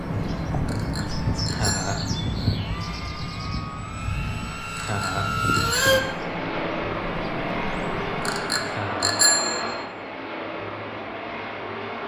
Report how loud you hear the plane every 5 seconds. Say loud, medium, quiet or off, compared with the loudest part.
medium, loud, medium.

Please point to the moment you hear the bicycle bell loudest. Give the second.
9 s.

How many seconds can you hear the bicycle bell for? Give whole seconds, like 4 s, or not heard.
4 s.